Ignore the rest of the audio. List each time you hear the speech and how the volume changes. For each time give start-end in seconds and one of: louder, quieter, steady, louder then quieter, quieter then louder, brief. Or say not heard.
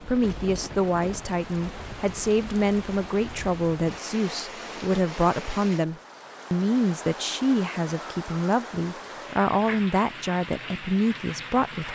0.1-11.9 steady.